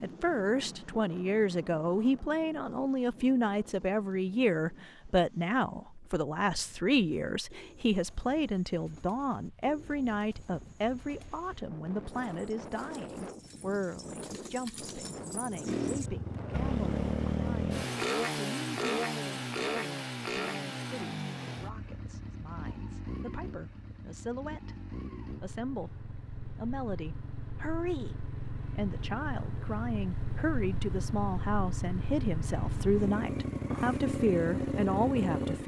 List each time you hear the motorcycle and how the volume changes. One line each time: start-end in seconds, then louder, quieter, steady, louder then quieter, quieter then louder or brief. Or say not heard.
15.7-35.6 quieter then louder.